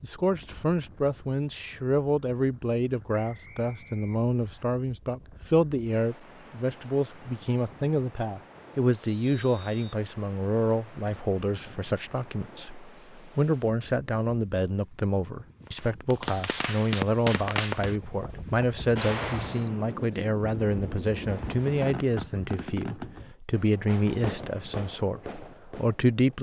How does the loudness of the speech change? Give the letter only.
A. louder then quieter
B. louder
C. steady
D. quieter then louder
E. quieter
C.